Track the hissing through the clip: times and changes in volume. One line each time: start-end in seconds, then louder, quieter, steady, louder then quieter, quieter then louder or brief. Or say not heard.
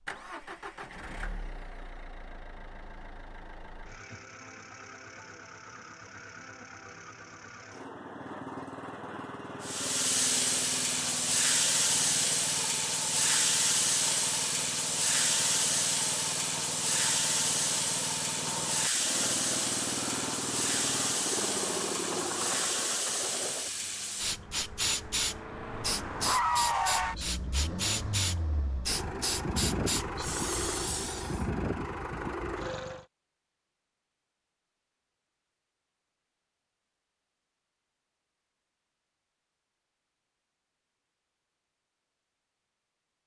9.6-31.4 quieter.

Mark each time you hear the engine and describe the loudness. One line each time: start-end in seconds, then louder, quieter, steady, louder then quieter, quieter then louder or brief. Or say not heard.
0.0-33.0 louder.